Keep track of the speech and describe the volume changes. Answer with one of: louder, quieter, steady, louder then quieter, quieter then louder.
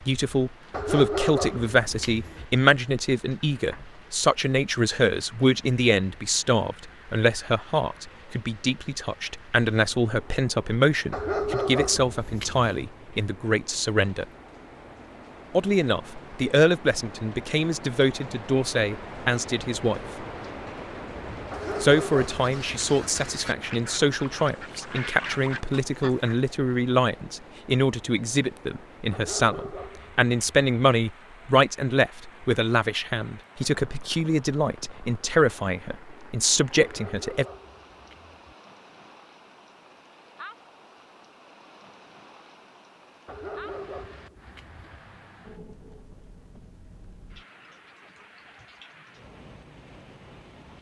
steady.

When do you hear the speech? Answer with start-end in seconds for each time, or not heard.
0.1-14.2, 15.6-20.0, 21.8-37.5.